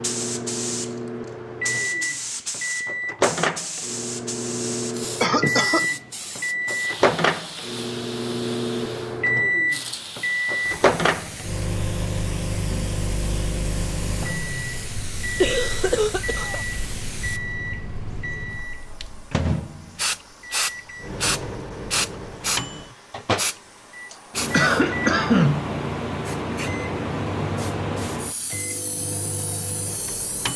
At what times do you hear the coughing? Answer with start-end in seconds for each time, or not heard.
5.2-5.9, 15.4-16.6, 24.1-25.7.